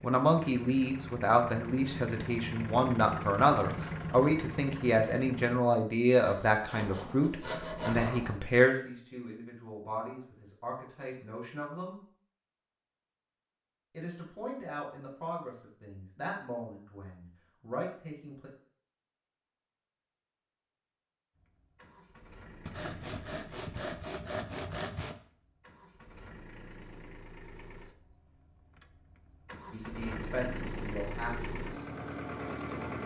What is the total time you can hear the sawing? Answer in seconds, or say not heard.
5 s.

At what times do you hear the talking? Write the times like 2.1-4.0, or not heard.
0.0-12.0, 13.9-18.5, 29.7-31.9.